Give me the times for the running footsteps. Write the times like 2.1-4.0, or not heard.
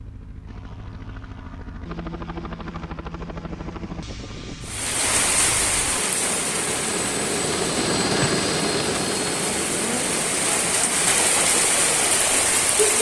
not heard.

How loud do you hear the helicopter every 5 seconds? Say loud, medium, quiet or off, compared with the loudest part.
medium, loud, medium.